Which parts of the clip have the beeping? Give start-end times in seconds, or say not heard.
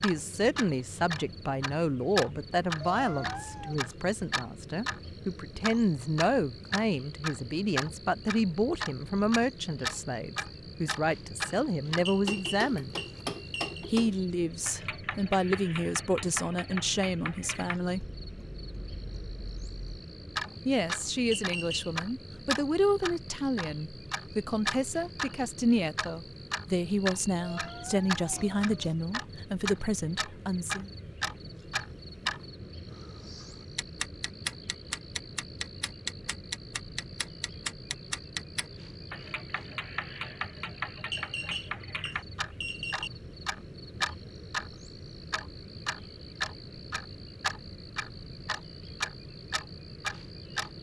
12.1-13.8, 21.3-21.9, 41.1-43.1.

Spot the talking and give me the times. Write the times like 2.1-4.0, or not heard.
0.0-12.9, 13.9-18.1, 20.6-30.9.